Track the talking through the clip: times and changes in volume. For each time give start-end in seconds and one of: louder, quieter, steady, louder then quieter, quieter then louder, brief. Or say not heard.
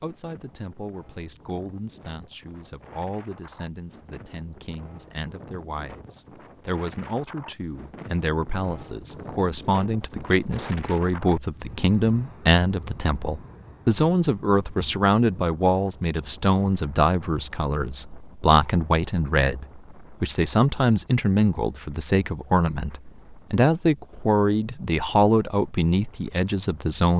0.0-27.1 louder.